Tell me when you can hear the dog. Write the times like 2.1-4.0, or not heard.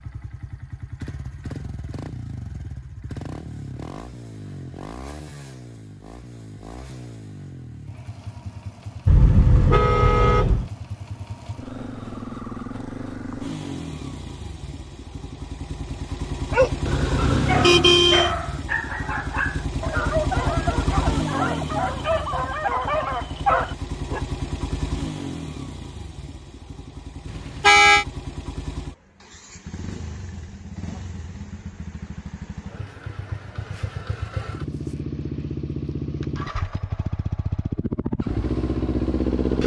16.5-24.2.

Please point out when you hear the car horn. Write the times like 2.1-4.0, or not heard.
9.1-10.7, 16.9-18.3, 27.6-28.1.